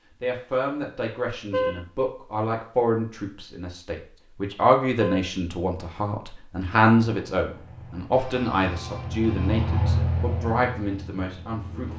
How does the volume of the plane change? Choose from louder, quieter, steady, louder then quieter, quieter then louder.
louder then quieter.